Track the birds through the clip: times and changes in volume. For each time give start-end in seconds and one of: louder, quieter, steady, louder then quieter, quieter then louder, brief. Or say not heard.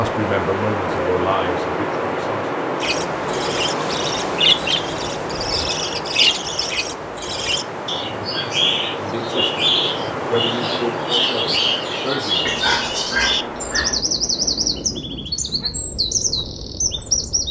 2.8-17.4 steady.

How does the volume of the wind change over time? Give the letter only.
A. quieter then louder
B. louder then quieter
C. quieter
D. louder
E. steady
C.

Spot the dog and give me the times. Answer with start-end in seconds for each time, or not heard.
12.4-14.0.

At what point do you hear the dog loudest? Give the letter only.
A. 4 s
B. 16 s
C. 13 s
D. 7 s
C.